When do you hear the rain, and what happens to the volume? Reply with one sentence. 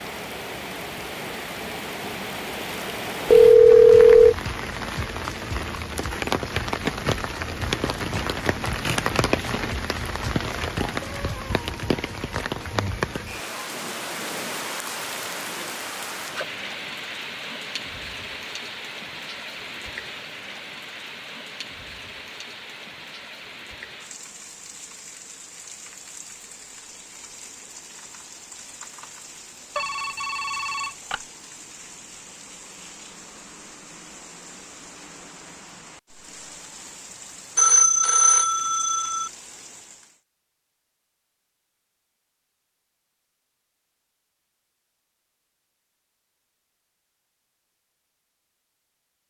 The rain can be heard from 0.0 to 40.2 s, getting quieter.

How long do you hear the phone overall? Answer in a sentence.
The phone can be heard for 4 seconds in total.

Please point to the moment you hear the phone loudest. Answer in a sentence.
The volume of the phone peaks at 4 seconds.